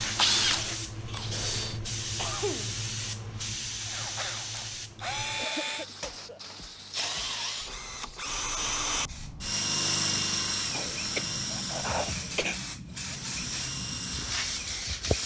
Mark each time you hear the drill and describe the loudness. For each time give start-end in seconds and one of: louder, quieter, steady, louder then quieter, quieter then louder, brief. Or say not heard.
0.0-1.8 brief
3.8-15.2 louder then quieter.